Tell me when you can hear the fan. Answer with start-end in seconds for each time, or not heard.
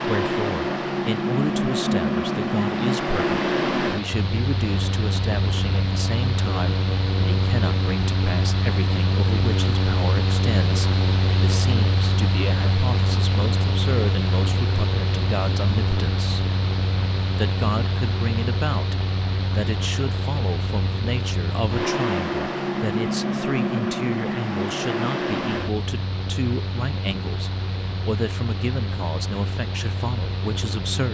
0.0-31.1.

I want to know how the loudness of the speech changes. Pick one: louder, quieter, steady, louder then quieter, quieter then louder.
steady.